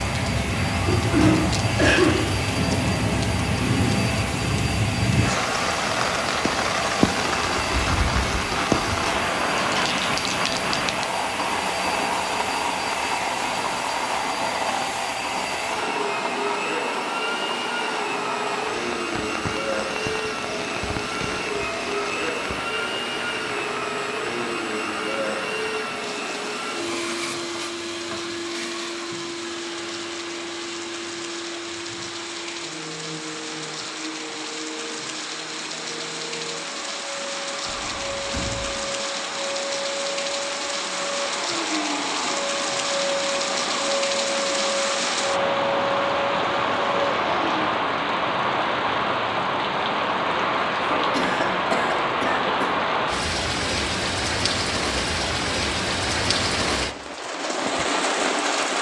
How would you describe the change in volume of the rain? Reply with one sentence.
The volume of the rain goes down, then up.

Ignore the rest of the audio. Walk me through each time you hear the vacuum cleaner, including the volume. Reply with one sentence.
You can hear the vacuum cleaner from 0.0 to 47.6 s, getting quieter then louder.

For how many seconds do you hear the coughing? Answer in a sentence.
The coughing can be heard for 3 seconds in total.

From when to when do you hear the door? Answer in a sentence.
You can hear the door from 37.8 to 38.8 s.